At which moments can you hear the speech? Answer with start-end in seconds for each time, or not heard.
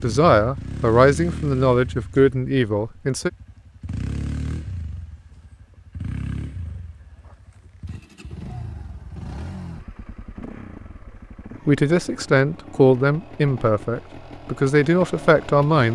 0.0-3.3, 11.7-15.9.